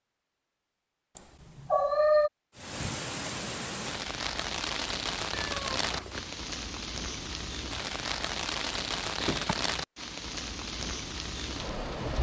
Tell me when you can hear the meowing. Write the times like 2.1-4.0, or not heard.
1.1-2.3, 5.5-6.4, 9.2-9.6.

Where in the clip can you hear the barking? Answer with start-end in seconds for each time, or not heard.
not heard.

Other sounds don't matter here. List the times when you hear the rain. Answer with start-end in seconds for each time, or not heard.
2.5-12.1.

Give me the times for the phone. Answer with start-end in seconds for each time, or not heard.
not heard.